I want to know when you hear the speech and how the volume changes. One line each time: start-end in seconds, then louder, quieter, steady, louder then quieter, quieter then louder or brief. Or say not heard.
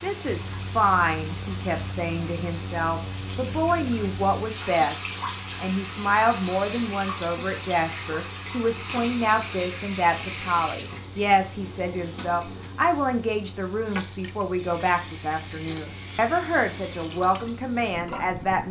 0.0-18.6 steady.